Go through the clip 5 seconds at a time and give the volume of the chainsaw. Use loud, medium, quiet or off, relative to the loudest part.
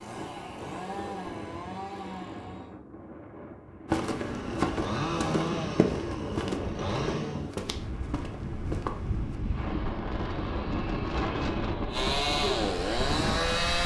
medium, loud, loud.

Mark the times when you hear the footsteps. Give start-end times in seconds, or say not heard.
3.9-9.4.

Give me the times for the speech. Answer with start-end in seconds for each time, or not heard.
not heard.